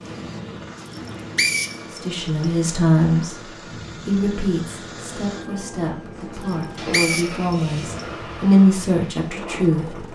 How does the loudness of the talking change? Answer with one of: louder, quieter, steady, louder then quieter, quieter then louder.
quieter then louder.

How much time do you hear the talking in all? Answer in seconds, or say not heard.
8 s.